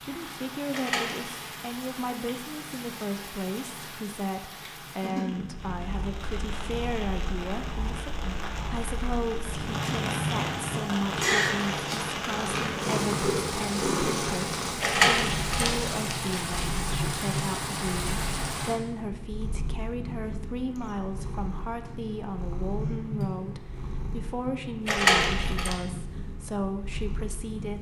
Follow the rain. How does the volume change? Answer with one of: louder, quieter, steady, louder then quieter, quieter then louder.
louder.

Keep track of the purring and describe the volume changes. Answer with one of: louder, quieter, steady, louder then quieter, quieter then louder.
louder then quieter.